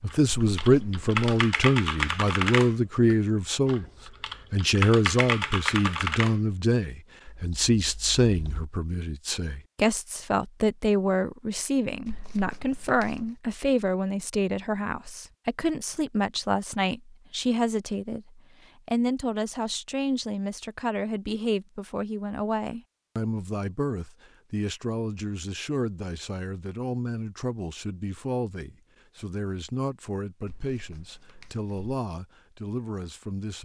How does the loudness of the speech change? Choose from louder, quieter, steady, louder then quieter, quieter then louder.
quieter.